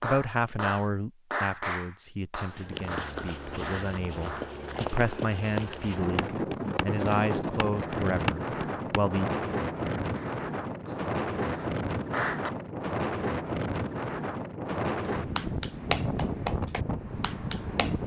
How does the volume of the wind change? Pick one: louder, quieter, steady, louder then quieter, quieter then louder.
steady.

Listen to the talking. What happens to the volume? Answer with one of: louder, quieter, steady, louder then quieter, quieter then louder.
quieter then louder.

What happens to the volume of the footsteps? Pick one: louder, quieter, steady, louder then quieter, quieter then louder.
louder.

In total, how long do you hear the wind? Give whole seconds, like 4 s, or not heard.
12 s.